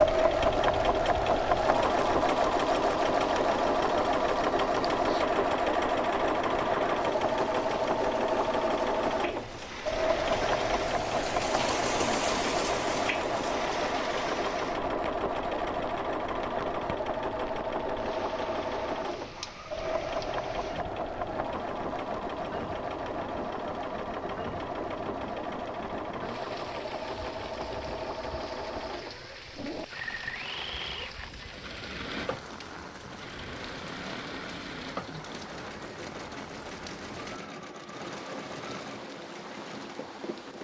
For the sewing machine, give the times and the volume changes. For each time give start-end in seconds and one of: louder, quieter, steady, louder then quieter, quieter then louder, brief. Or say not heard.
0.0-40.5 quieter.